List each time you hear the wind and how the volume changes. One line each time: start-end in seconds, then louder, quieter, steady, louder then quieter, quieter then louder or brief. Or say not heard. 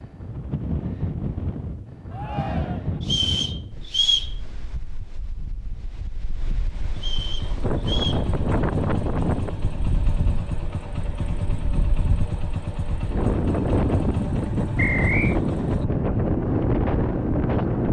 0.0-17.8 quieter then louder.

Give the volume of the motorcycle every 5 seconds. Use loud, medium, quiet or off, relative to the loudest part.
off, loud, loud, loud.